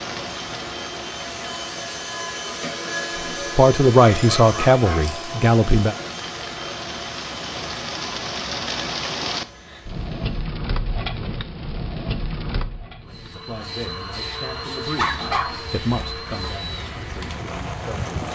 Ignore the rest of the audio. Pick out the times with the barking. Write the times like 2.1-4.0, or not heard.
4.0-5.2, 14.9-15.6.